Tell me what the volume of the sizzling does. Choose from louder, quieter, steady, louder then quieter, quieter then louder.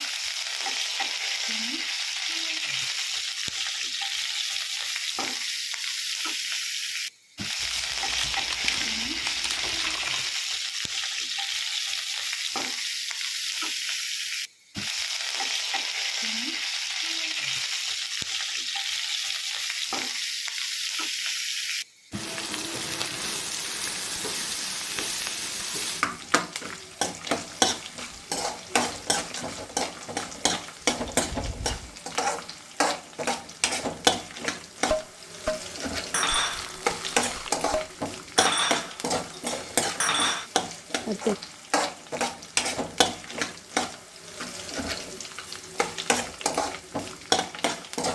steady.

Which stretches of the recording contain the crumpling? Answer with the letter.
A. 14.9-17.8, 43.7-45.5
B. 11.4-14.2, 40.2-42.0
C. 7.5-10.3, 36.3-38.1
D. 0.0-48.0
C.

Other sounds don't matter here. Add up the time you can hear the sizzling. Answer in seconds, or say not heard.
48 s.